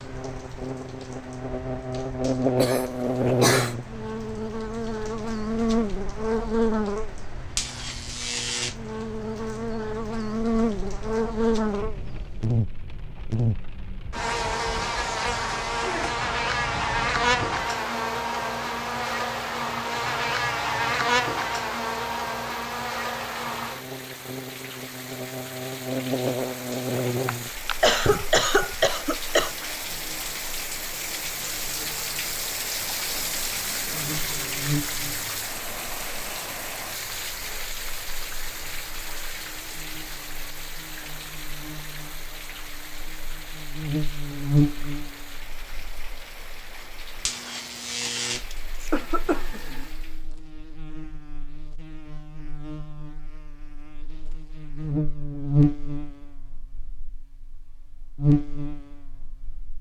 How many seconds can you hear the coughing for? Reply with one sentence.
The coughing can be heard for 5 seconds in total.